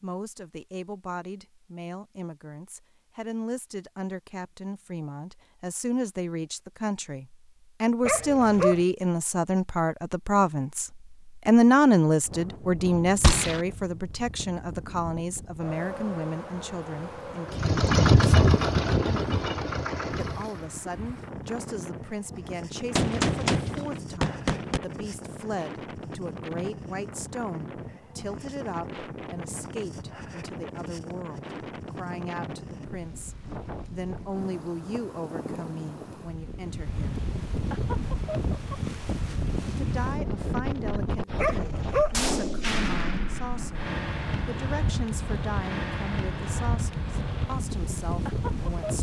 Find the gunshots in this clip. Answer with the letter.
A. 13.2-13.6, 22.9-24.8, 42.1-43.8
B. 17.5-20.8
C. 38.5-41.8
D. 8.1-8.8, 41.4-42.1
A.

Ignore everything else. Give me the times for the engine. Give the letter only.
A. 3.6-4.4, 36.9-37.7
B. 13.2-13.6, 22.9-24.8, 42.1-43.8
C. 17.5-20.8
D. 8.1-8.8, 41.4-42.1
C.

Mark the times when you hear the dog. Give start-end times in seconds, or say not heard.
8.1-8.8, 41.4-42.1.